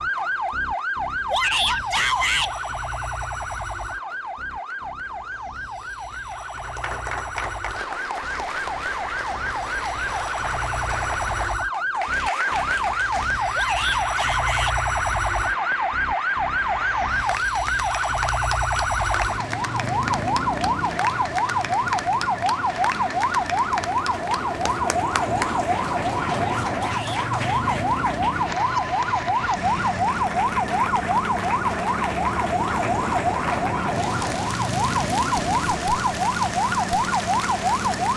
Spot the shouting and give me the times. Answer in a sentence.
The shouting can be heard from 1.3 to 2.5 s, from 13.6 to 14.8 s and from 26.9 to 27.9 s.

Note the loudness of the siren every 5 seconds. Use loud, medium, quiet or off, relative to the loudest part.
medium, medium, loud, loud, loud, loud, loud, loud.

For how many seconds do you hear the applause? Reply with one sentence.
The applause can be heard for 38 seconds in total.